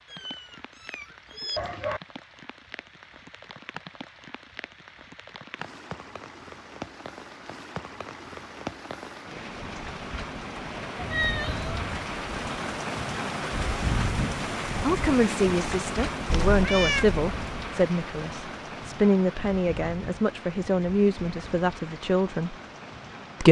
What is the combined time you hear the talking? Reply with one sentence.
You can hear the talking for 8 seconds altogether.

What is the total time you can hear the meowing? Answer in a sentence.
The meowing can be heard for 4 seconds in total.